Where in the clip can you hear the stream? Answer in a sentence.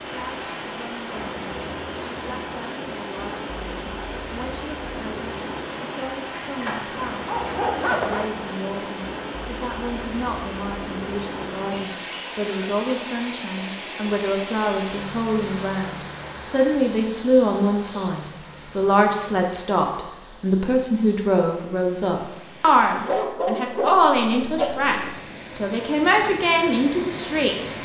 The stream can be heard from 0.0 to 27.8 s.